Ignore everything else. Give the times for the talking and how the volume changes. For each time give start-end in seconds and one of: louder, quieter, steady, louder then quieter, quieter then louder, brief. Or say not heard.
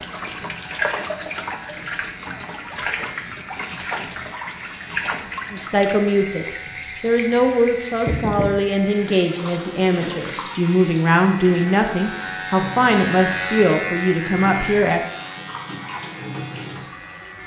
5.5-15.0 steady.